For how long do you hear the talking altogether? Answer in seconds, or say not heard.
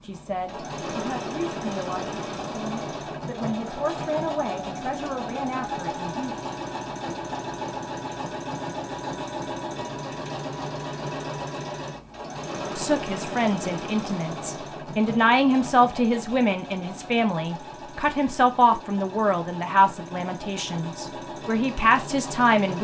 16 s.